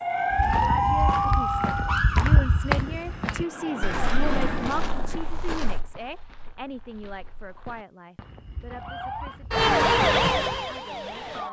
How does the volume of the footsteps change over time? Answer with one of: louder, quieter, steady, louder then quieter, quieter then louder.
quieter then louder.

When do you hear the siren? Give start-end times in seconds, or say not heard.
0.0-4.4, 8.7-11.4.